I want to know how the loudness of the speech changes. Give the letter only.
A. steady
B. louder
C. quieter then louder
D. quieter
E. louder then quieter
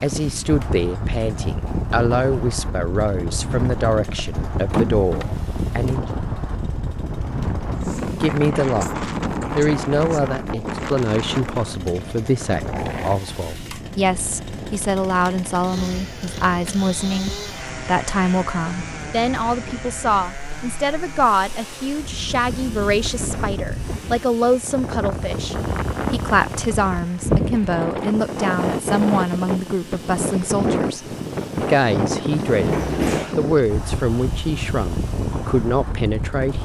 A.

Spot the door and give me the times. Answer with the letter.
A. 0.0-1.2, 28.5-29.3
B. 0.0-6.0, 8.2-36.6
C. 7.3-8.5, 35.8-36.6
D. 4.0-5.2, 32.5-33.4
D.